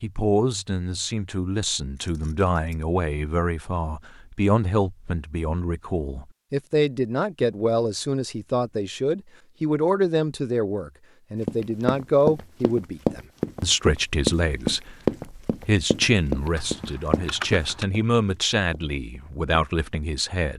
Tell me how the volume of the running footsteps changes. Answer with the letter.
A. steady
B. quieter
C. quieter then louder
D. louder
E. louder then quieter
B.